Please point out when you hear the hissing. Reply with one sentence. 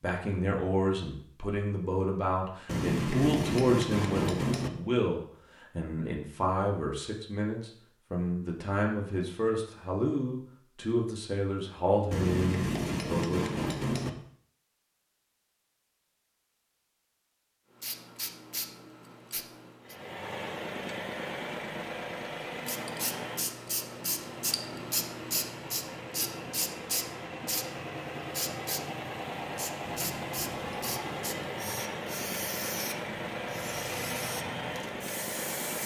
You can hear the hissing from 17.8 to 19.9 s and from 22.6 to 35.8 s.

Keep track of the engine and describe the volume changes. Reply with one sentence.
The loudness of the engine goes down, then up.